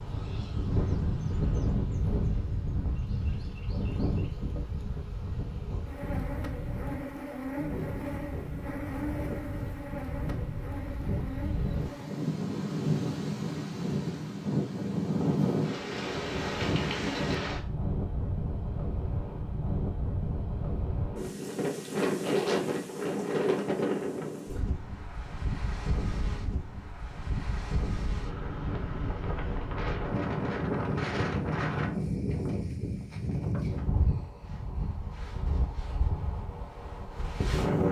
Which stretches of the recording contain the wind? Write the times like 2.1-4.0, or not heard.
0.0-37.8.